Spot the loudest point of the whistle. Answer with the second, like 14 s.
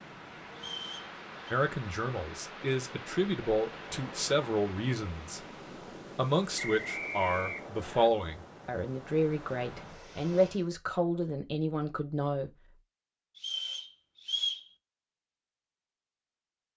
14 s.